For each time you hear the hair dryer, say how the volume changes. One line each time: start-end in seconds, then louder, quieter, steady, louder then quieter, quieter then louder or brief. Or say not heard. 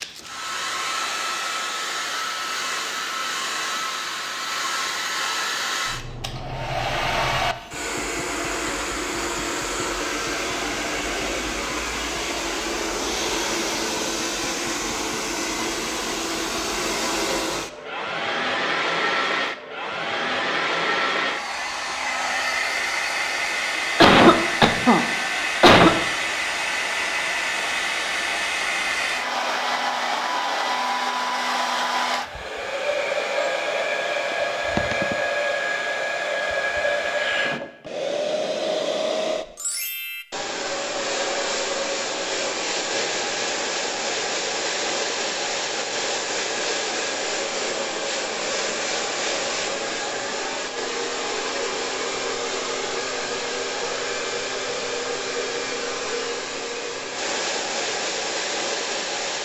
0.0-59.4 steady.